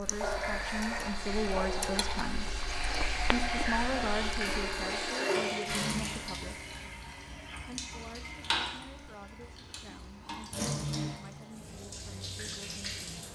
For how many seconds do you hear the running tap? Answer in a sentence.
The running tap can be heard for 13 seconds in total.